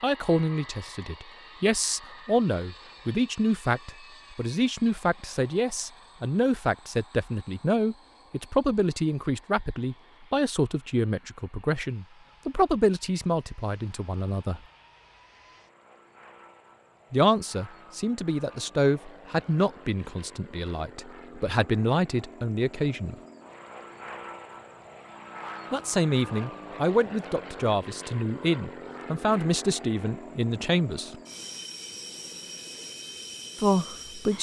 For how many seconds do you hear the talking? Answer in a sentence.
You can hear the talking for 27 seconds altogether.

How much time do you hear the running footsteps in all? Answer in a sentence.
The running footsteps can't be heard in this clip.